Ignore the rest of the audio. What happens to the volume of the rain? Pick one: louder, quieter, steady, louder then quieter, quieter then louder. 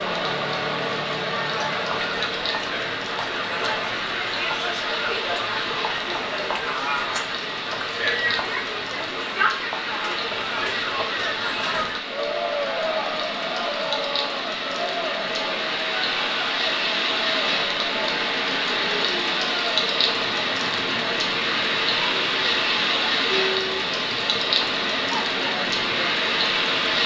louder.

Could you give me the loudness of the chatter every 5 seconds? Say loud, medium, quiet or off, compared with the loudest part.
loud, loud, loud, medium, medium, medium.